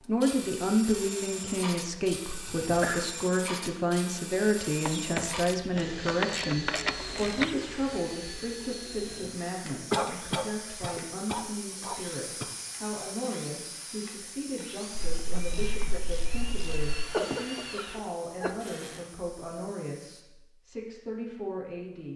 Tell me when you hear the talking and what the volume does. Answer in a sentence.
You can hear the talking from 0.0 to 22.1 s, getting quieter.